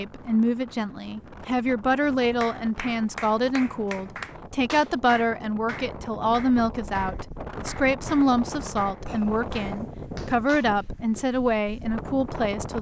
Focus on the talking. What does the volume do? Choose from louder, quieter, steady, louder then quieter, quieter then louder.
steady.